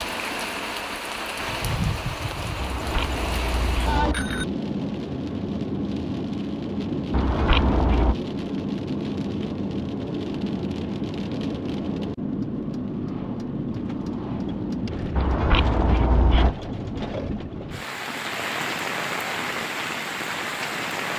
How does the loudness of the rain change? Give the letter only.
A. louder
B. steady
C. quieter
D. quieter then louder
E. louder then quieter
B.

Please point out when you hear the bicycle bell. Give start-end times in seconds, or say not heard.
2.5-4.5, 7.1-8.2, 15.2-16.6.